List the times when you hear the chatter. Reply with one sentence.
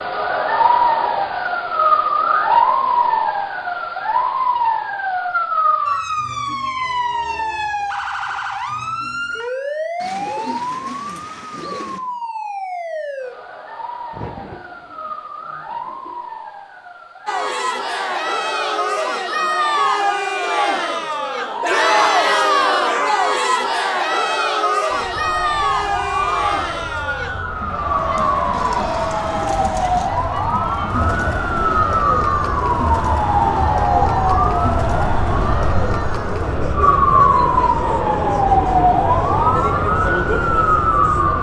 You can hear the chatter from 17.2 to 41.3 s.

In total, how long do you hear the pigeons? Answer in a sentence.
You can hear the pigeons for 6 seconds altogether.